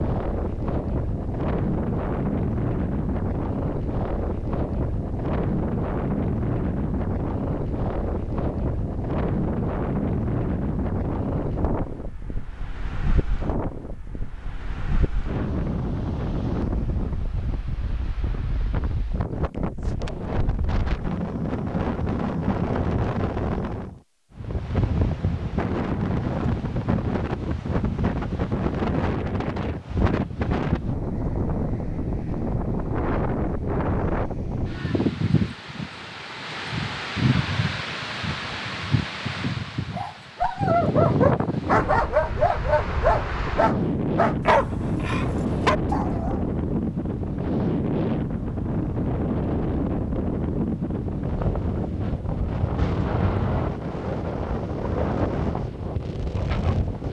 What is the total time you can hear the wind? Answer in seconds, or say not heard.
57 s.